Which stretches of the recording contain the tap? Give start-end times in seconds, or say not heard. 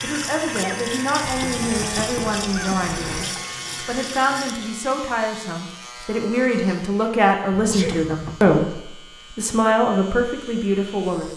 0.0-4.8.